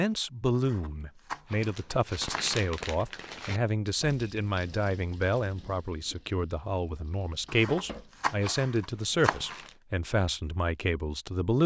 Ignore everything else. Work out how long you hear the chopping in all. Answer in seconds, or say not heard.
4 s.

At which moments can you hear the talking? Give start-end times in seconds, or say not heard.
0.0-11.6.